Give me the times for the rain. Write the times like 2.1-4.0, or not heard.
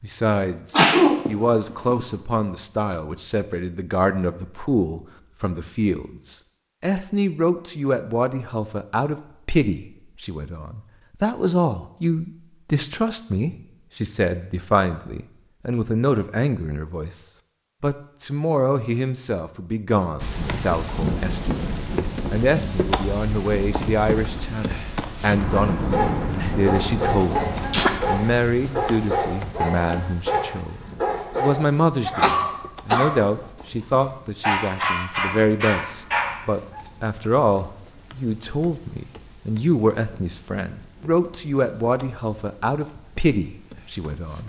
20.1-44.4.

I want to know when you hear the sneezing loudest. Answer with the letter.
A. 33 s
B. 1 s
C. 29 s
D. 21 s
B.